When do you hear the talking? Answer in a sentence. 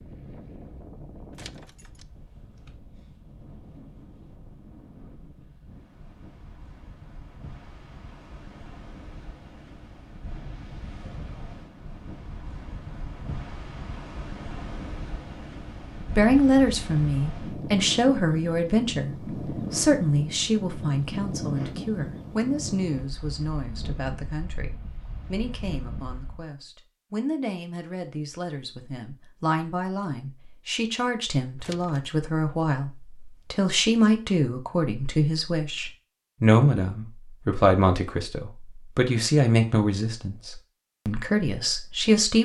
You can hear the talking from 16.1 to 42.4 s.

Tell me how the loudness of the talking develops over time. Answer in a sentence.
The volume of the talking goes down, then up.